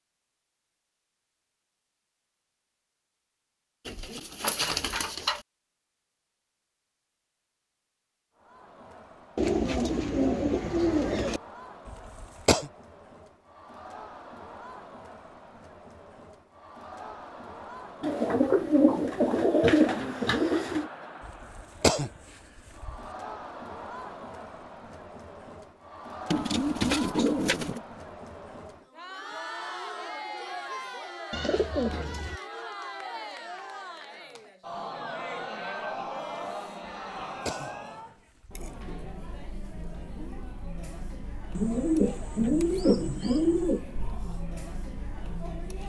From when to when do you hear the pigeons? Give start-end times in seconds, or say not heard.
3.9-5.4, 9.3-11.4, 18.0-20.9, 26.3-27.8, 31.3-32.4, 41.5-43.8.